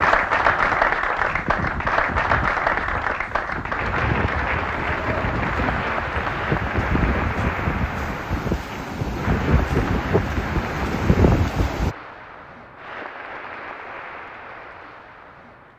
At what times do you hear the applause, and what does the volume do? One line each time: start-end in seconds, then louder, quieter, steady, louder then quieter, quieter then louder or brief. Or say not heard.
0.0-15.7 quieter.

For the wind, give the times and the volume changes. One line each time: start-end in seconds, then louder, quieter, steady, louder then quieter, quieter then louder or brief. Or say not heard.
0.0-11.9 louder.